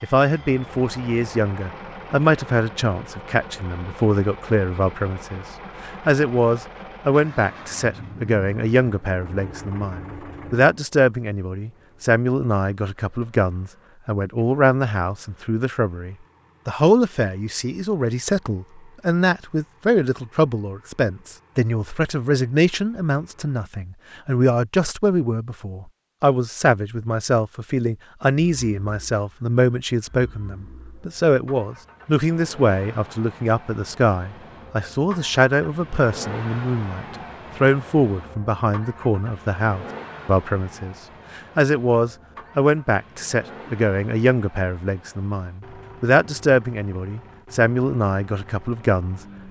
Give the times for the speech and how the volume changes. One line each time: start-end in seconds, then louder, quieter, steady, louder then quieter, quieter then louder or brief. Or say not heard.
0.0-49.2 steady.